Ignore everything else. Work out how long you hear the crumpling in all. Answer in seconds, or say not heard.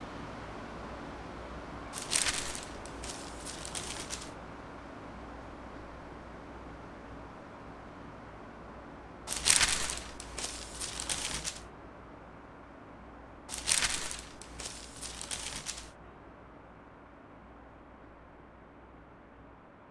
7 s.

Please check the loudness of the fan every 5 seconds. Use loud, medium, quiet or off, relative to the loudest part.
loud, loud, medium, medium.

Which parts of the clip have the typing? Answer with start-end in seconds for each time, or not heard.
not heard.